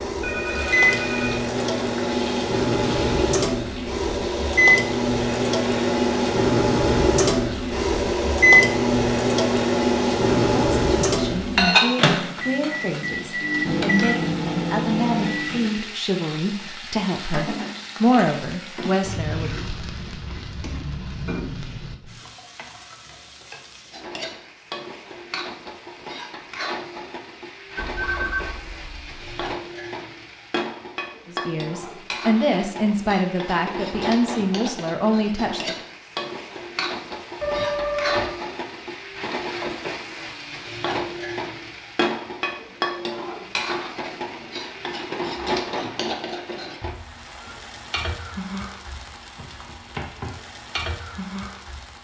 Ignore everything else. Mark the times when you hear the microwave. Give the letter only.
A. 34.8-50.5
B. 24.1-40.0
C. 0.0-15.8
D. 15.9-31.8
C.